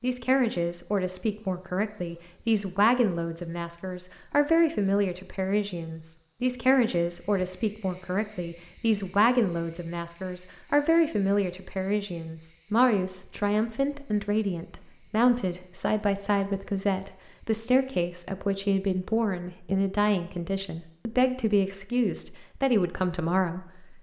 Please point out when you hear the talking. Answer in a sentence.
The talking can be heard from 0.0 to 23.9 s.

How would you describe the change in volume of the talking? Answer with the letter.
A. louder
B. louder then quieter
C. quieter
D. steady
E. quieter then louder
D.